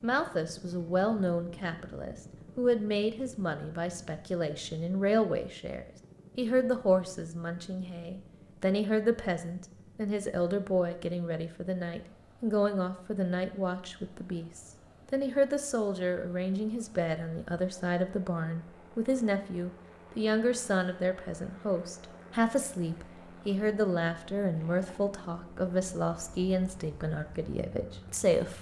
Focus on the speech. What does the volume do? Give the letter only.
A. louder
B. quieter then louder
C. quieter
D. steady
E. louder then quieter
D.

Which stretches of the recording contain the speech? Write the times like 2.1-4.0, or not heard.
0.0-28.5.